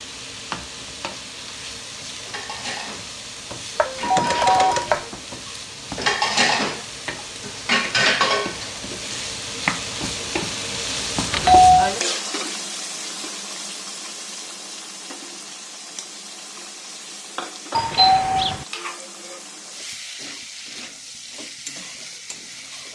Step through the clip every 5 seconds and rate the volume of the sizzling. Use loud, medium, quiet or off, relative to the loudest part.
medium, loud, loud, medium, medium.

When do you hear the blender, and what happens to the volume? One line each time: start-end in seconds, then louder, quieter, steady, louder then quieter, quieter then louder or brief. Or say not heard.
not heard.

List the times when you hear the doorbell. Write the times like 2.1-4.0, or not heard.
4.0-4.9, 11.3-11.9, 17.8-18.6.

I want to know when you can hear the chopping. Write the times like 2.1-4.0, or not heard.
3.8-5.1.